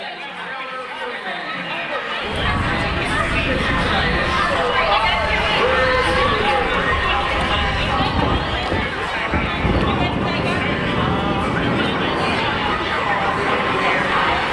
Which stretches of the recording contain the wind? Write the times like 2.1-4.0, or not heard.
2.2-14.4.